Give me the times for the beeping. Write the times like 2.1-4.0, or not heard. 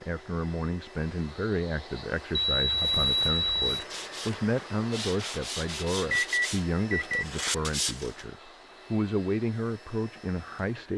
2.4-3.8, 6.1-7.2.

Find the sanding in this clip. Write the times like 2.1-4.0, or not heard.
2.7-8.2.